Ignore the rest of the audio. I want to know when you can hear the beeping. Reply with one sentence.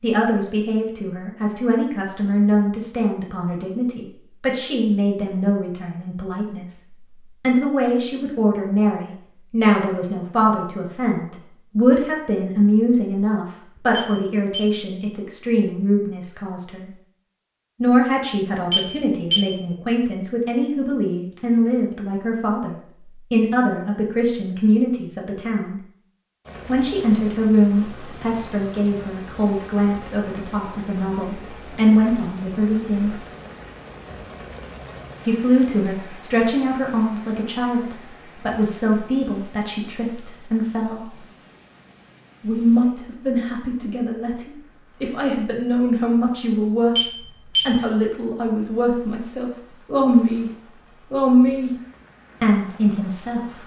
The beeping can be heard from 13.9 to 14.8 s, from 18.7 to 19.5 s and from 47.0 to 47.8 s.